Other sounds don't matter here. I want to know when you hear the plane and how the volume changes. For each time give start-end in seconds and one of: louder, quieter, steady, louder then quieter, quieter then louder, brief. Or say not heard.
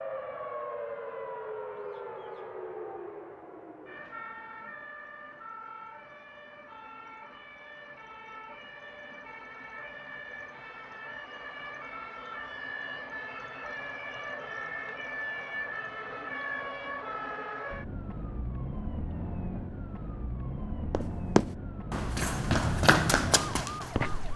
not heard.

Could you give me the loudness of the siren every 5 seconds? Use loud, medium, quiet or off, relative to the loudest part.
loud, medium, loud, loud, loud.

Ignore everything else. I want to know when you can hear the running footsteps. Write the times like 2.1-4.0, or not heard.
20.9-24.3.